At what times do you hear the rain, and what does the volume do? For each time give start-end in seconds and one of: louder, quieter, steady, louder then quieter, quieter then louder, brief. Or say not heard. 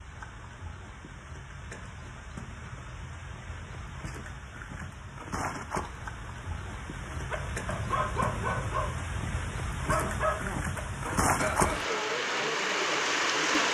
0.0-13.7 louder.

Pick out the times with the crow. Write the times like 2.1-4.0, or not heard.
not heard.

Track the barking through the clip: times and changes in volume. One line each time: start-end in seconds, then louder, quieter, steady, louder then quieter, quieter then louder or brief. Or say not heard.
7.0-12.2 steady.